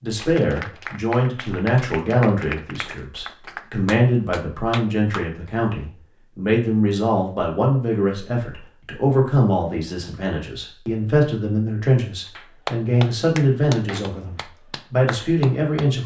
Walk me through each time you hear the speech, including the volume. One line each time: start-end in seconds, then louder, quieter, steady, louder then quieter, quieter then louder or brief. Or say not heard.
0.0-16.0 steady.